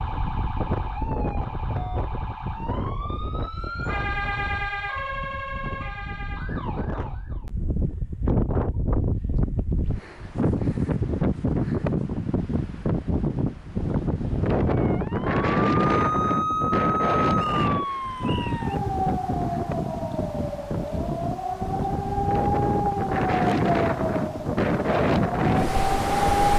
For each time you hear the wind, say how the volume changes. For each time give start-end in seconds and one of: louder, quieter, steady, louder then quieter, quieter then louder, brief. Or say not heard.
0.0-26.5 louder.